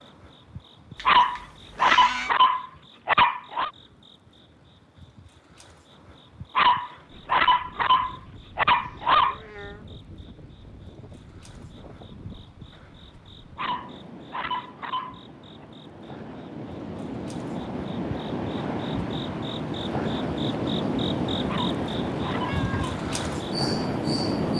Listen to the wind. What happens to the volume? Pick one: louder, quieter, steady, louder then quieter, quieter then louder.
louder.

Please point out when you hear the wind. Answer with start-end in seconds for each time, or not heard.
7.0-24.5.